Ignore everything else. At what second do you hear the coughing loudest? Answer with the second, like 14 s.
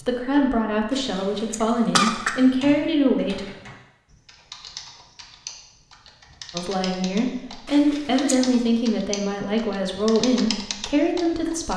2 s.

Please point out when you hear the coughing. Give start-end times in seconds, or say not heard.
0.9-2.4, 7.7-8.4.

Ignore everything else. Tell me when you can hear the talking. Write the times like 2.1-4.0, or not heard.
0.0-3.5, 6.5-11.7.